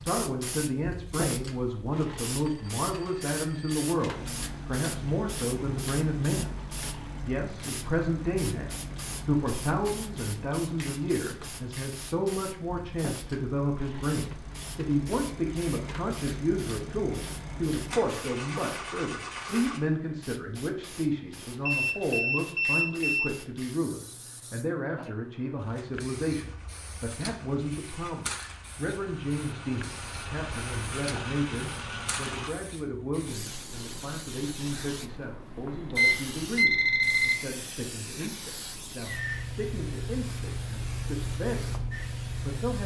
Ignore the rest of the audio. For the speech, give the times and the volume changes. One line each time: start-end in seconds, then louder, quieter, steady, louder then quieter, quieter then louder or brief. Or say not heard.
0.1-42.8 quieter.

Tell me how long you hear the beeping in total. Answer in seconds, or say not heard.
5 s.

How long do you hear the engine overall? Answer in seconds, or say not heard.
23 s.